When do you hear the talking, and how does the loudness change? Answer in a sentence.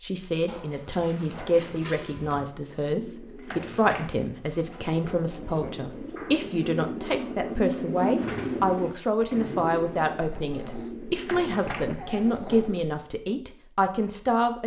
You can hear the talking from 0.0 to 14.6 s, at a steady volume.